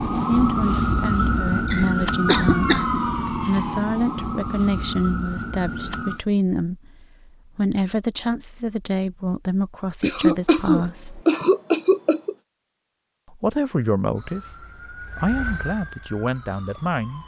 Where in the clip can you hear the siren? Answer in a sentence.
You can hear the siren from 0.0 to 6.2 s and from 14.1 to 17.2 s.